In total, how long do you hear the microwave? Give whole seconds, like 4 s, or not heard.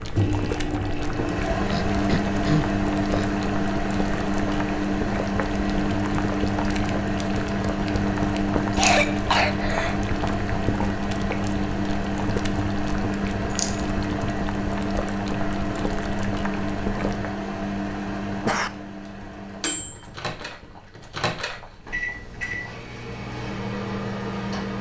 25 s.